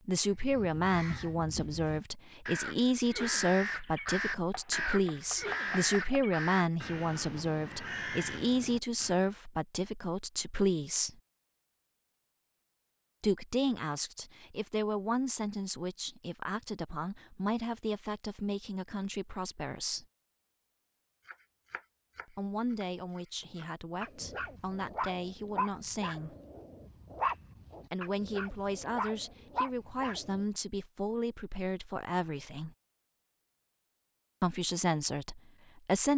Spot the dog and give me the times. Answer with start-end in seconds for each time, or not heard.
24.0-30.4.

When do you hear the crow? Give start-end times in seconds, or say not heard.
0.2-9.3.